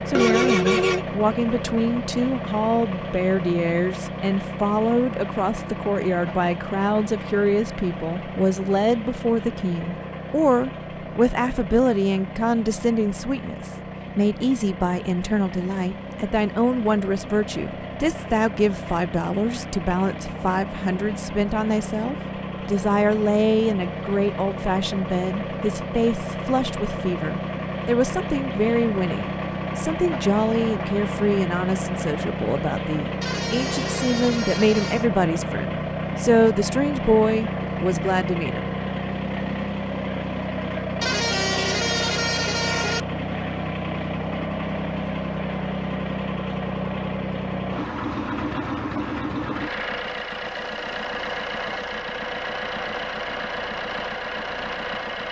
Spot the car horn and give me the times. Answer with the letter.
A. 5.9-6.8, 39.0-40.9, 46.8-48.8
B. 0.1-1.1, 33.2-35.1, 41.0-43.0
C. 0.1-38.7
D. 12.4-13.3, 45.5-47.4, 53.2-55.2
B.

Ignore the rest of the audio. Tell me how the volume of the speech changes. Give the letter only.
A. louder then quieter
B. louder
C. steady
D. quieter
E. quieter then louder
C.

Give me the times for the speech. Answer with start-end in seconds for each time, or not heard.
0.1-38.7.